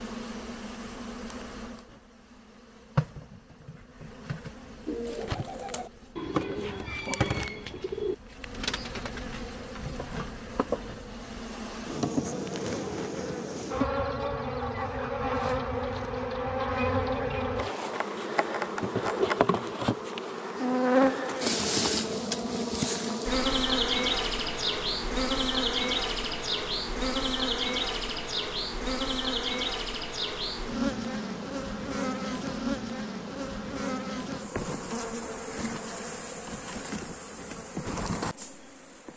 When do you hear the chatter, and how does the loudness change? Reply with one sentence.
The chatter can't be heard in this clip.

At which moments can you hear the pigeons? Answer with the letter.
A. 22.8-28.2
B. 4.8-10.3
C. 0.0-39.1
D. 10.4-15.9
B.